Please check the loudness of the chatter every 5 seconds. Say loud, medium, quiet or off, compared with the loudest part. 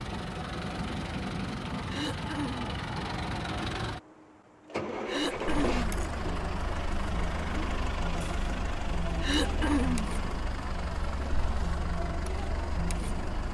off, loud, loud.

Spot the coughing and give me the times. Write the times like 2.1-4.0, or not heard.
1.9-2.7, 5.0-6.0, 9.2-10.2.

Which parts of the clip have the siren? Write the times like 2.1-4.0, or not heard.
not heard.